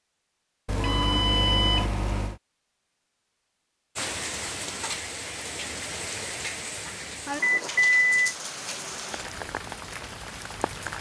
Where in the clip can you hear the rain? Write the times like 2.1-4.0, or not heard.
4.0-10.9.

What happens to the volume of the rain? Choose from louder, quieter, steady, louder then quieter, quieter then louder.
steady.